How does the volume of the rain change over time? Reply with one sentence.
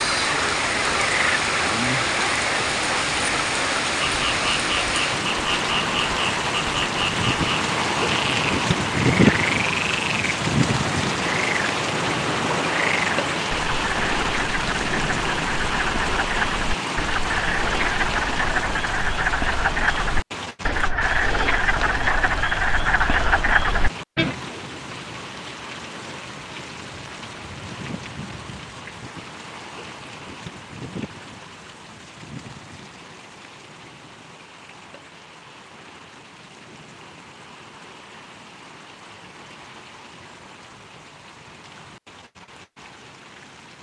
The volume of the rain goes down.